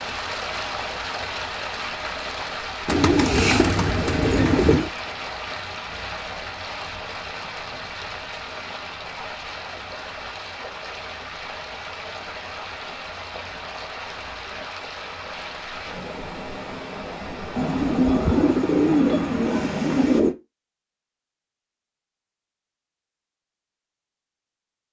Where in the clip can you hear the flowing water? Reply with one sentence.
You can hear the flowing water from 0.0 to 20.2 s.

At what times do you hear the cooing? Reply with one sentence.
You can hear the cooing from 2.9 to 4.9 s and from 17.6 to 20.4 s.